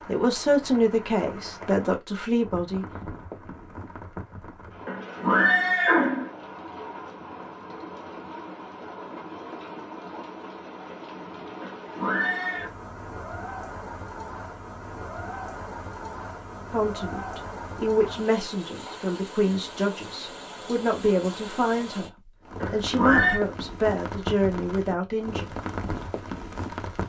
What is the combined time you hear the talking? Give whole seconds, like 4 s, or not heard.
12 s.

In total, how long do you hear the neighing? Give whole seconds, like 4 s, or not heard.
3 s.